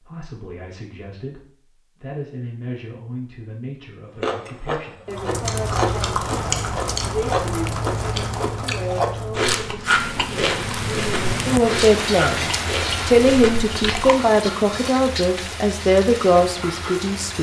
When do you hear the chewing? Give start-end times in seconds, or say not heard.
4.2-14.2.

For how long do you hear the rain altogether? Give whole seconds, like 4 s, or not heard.
12 s.